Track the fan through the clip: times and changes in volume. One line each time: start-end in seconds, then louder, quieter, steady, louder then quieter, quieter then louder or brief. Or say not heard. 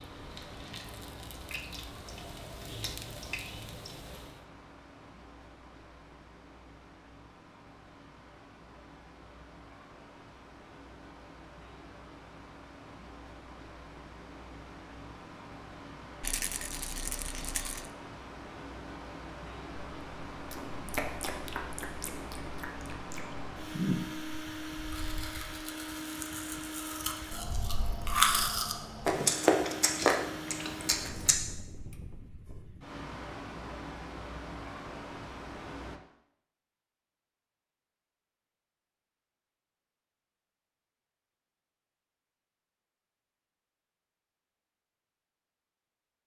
0.0-36.0 louder.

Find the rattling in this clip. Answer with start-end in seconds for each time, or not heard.
16.2-17.9.